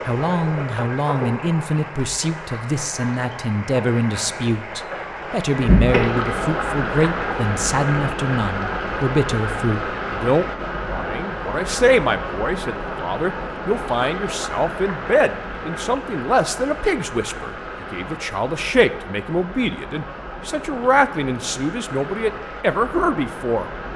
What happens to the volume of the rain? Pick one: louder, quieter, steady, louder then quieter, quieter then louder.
louder then quieter.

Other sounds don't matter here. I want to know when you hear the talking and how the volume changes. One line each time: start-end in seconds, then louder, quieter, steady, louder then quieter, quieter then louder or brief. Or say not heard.
0.1-23.6 steady.